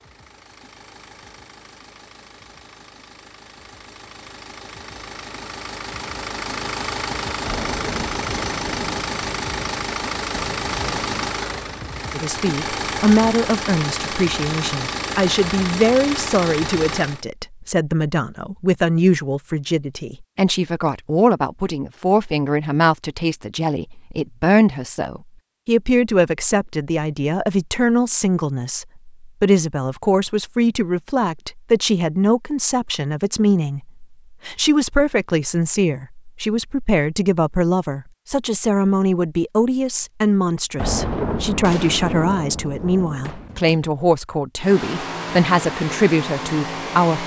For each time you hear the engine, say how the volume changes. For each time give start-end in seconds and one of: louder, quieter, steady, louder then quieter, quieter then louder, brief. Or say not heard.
0.0-17.2 louder
44.5-47.2 brief.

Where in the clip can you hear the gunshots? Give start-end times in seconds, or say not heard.
7.5-11.3, 40.8-43.8.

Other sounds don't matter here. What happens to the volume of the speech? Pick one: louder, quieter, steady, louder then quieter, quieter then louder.
steady.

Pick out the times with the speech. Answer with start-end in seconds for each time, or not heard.
12.2-47.2.